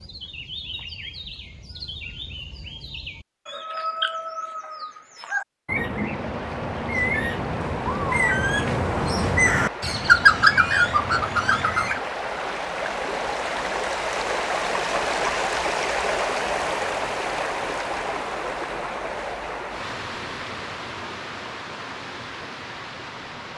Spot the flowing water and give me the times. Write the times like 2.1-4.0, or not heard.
5.9-23.5.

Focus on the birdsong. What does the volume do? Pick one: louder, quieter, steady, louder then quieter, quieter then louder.
louder.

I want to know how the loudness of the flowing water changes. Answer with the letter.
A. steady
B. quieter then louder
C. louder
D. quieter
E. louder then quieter
E.